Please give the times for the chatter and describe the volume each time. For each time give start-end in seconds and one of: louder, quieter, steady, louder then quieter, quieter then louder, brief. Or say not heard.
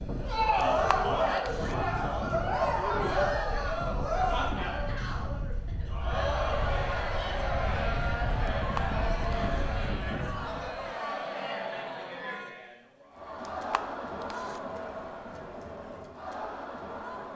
0.1-17.3 quieter.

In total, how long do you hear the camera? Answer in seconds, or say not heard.
3 s.